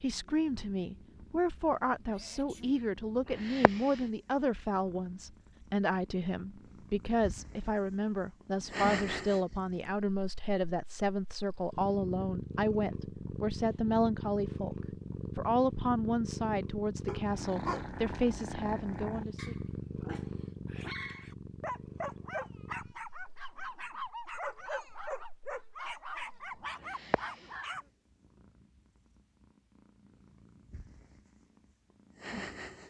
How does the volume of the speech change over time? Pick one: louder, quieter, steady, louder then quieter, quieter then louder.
steady.